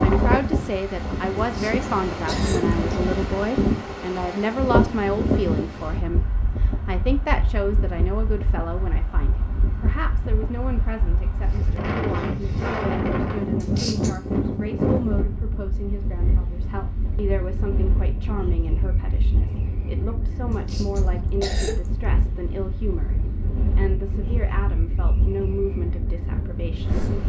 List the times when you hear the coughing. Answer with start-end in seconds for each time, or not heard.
1.5-3.0, 13.6-14.2, 20.5-21.9.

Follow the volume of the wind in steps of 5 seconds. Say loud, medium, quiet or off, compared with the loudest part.
loud, medium, loud, medium, medium, medium.